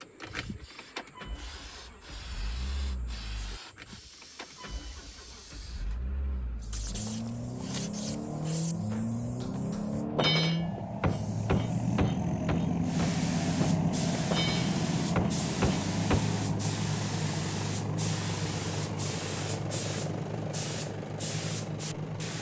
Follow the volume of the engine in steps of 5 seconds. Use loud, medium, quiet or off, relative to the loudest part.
quiet, medium, loud, loud, medium.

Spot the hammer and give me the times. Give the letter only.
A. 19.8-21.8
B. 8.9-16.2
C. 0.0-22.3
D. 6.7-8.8
B.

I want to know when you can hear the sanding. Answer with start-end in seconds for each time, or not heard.
6.7-8.8.